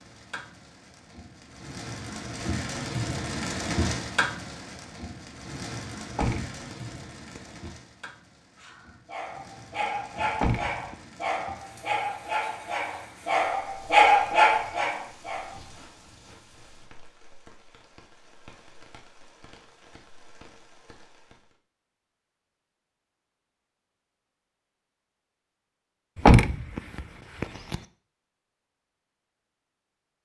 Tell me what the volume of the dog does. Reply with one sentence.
The volume of the dog goes up.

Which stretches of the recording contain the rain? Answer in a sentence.
You can hear the rain from 0.0 to 21.6 s.